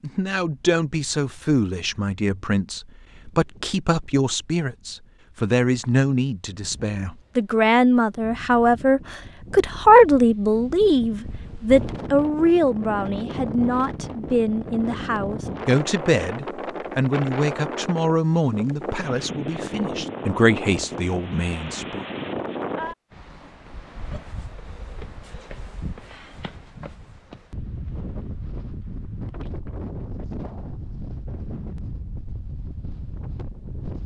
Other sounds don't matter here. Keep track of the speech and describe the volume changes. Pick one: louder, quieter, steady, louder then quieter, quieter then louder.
louder then quieter.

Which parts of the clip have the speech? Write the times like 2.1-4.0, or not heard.
0.0-22.1.